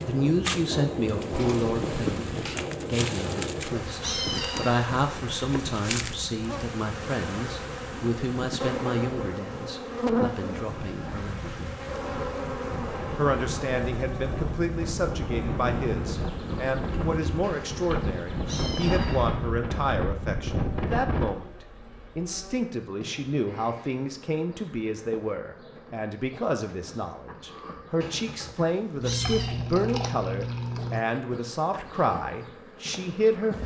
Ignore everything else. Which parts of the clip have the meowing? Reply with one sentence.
You can hear the meowing from 3.0 to 4.8 s, from 17.4 to 19.3 s and from 28.0 to 29.5 s.